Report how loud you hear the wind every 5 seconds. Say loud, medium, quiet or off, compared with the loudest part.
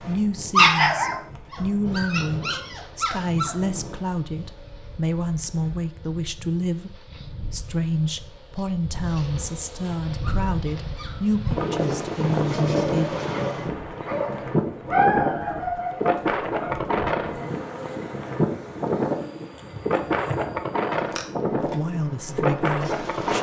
quiet, quiet, loud, loud, loud.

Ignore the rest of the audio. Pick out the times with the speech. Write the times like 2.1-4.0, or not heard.
0.0-13.2, 21.6-23.3.